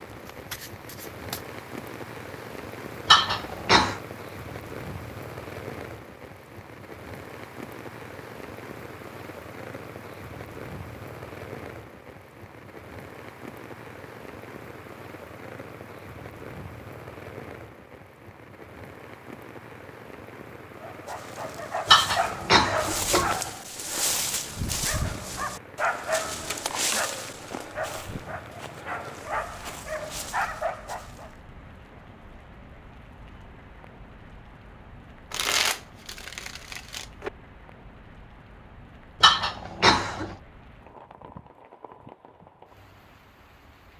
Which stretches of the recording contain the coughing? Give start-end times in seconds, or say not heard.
3.0-4.0, 21.9-23.4, 39.2-40.4.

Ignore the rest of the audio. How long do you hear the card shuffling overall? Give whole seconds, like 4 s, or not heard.
3 s.